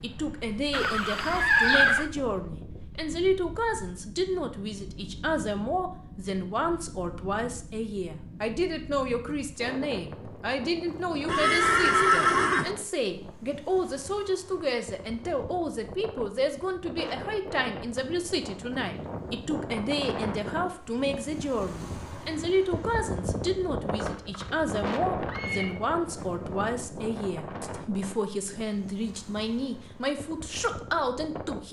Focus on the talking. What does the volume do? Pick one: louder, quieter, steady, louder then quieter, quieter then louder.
steady.